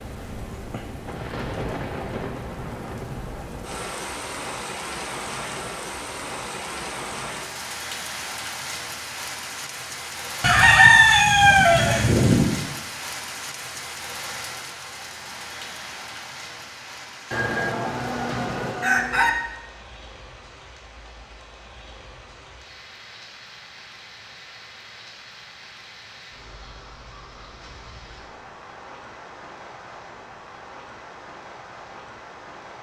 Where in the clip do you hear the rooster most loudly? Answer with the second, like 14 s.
11 s.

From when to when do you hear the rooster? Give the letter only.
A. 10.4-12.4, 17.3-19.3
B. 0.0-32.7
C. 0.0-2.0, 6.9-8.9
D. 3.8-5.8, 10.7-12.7
A.